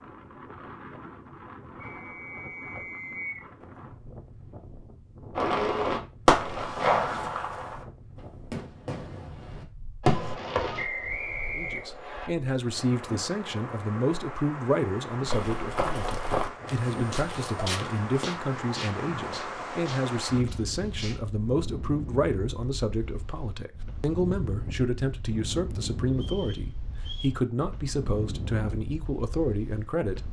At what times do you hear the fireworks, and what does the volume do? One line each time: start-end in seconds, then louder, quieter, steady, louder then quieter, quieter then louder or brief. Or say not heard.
5.3-10.8 quieter then louder.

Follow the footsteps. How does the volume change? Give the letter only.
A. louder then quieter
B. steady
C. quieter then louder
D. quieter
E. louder
D.